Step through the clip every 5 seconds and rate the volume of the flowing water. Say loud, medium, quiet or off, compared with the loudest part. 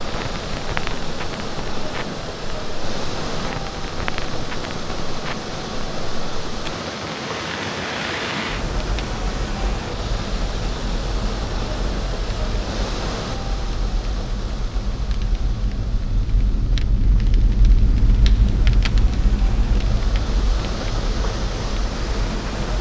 loud, loud, loud, medium, loud.